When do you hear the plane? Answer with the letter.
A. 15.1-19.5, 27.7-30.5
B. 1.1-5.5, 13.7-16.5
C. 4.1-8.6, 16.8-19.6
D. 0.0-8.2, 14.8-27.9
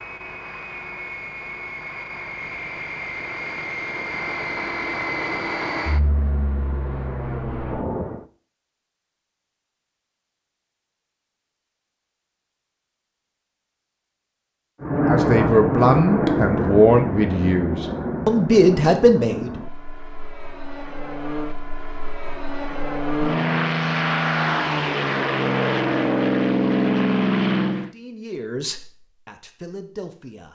D.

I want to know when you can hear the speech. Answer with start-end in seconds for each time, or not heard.
15.1-19.5, 27.7-30.5.